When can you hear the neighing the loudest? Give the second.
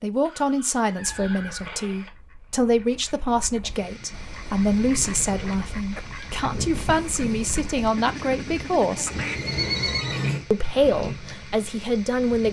10 s.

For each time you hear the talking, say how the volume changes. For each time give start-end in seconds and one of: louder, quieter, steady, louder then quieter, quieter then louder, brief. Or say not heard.
0.0-9.1 steady
10.5-12.4 brief.